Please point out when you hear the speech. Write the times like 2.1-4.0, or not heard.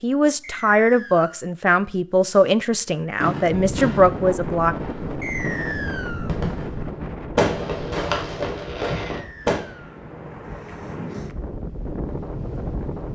0.0-4.8.